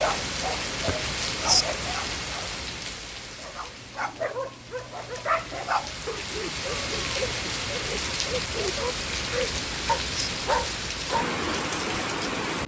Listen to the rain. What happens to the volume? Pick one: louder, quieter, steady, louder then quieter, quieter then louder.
quieter then louder.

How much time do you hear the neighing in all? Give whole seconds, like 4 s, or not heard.
2 s.